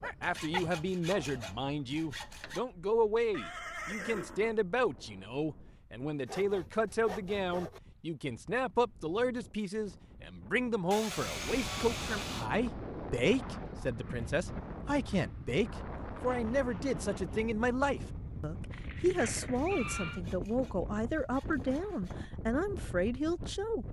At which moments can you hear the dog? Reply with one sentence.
You can hear the dog from 0.0 to 1.6 s.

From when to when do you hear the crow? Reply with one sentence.
The crow can't be heard in this clip.